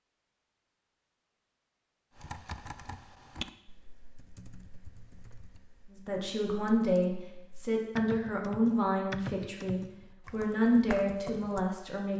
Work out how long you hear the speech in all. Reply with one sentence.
The speech can be heard for 6 seconds in total.